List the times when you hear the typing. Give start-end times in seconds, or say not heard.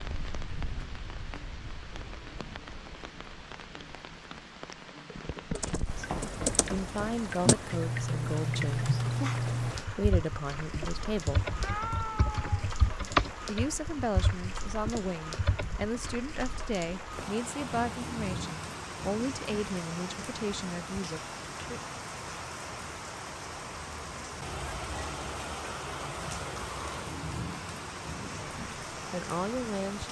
5.5-16.1.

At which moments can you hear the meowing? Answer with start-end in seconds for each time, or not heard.
11.6-12.7.